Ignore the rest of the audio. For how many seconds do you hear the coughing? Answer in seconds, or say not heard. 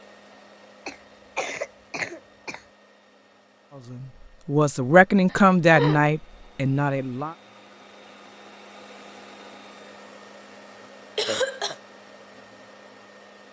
3 s.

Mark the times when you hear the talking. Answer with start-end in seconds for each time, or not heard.
3.8-7.3.